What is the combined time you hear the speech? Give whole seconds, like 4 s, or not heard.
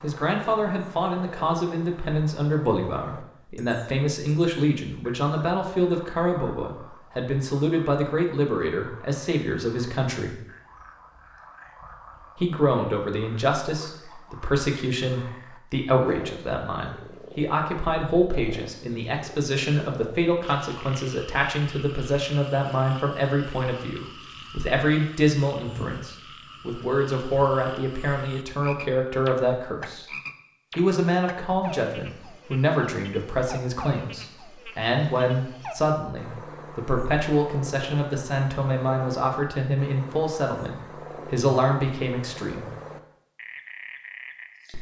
40 s.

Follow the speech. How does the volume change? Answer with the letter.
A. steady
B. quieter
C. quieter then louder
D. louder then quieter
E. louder
A.